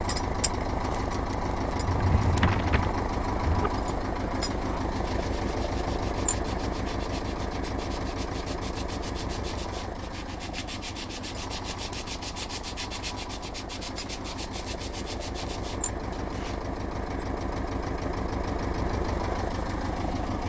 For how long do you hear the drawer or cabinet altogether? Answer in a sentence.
The drawer or cabinet can be heard for 2 seconds in total.